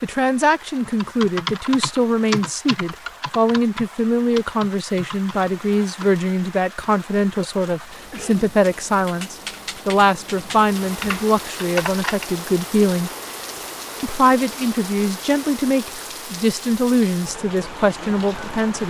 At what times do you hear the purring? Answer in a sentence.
You can't hear the purring here.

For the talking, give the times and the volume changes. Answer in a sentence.
The talking can be heard from 0.0 to 13.1 s, at a steady volume; and from 14.0 to 18.8 s, at a steady volume.